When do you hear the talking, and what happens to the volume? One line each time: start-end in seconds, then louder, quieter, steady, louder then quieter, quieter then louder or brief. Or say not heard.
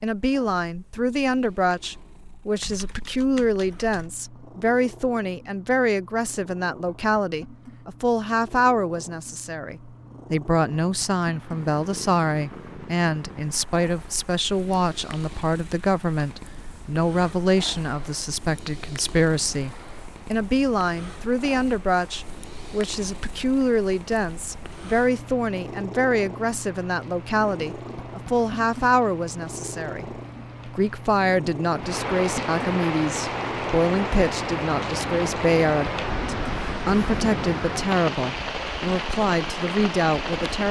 0.0-40.6 steady.